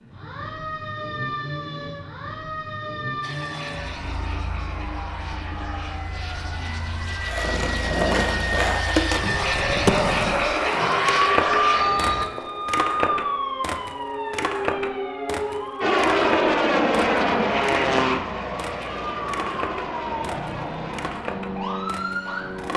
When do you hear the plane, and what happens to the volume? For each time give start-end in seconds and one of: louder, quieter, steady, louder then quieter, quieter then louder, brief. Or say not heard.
3.2-12.2 louder
15.8-22.7 quieter.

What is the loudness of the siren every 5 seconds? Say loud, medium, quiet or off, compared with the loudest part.
medium, medium, loud, medium, medium.